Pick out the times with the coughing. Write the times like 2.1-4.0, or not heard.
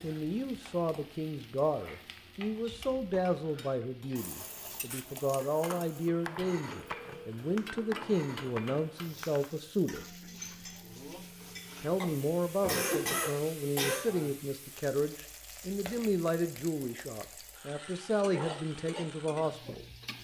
12.7-14.1.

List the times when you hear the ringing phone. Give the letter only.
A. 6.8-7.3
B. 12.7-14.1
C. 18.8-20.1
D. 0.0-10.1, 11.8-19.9
A.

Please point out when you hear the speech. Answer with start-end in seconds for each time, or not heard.
0.0-10.1, 11.8-19.9.